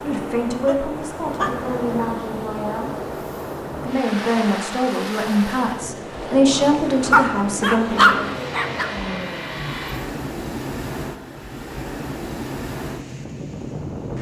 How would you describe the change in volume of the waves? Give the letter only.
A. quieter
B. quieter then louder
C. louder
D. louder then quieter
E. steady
E.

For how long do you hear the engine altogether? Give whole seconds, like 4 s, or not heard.
2 s.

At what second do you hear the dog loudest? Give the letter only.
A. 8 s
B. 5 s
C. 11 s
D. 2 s
A.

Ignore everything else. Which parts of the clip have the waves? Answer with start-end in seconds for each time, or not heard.
0.0-14.1.